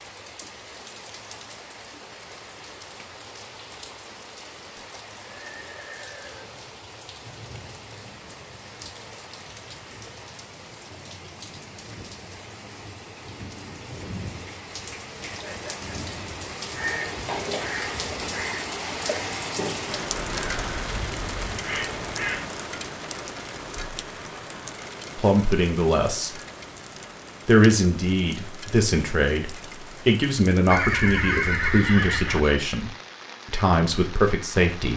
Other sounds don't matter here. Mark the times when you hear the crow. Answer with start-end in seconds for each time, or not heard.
16.7-22.4.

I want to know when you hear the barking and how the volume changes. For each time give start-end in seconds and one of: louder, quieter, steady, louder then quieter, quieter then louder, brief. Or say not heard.
not heard.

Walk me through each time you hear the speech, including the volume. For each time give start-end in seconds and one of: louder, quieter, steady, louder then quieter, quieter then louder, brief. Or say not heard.
25.1-26.4 brief
27.4-34.9 steady.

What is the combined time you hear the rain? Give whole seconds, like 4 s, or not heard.
35 s.